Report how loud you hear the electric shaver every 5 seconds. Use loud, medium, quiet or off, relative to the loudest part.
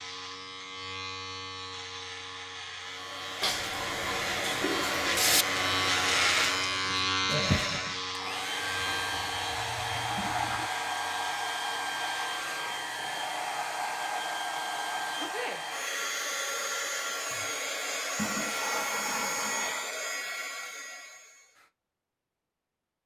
medium, loud, medium, off, off.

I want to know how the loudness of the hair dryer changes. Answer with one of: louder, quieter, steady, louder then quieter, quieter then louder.
steady.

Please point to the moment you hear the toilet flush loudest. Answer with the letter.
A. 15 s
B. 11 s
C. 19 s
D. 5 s
D.